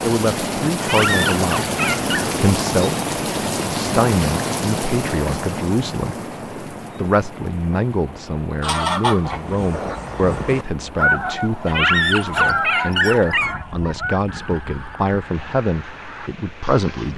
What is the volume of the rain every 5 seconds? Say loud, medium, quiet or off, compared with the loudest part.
loud, medium, quiet, quiet.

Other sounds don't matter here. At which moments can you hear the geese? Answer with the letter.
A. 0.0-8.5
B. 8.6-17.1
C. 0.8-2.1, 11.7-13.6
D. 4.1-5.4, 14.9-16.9
B.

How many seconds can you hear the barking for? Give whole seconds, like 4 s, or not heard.
3 s.